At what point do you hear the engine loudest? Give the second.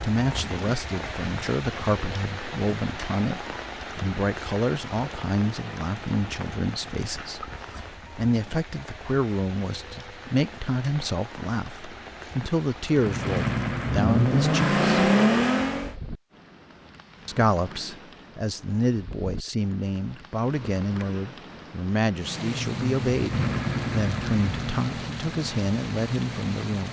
15 s.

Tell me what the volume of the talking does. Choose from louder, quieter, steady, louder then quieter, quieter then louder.
steady.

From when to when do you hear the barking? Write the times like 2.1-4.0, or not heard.
not heard.